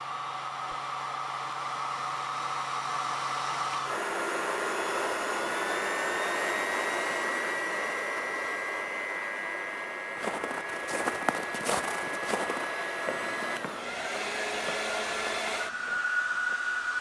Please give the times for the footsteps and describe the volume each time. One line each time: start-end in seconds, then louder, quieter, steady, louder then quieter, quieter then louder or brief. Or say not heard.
10.1-16.6 quieter.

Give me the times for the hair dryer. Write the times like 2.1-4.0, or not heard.
0.0-16.9.